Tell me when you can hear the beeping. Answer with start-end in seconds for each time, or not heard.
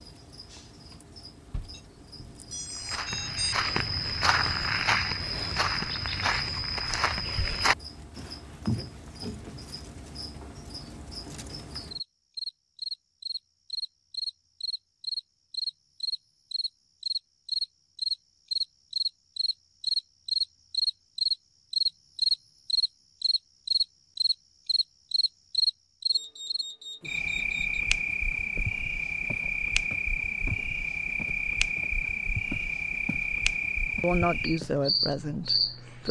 1.5-3.5, 26.1-27.9.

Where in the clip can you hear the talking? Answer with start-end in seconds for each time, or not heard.
34.0-36.0.